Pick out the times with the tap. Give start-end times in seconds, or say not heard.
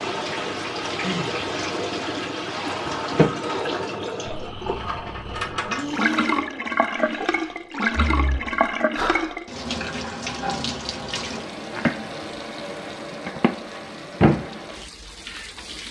0.0-15.8.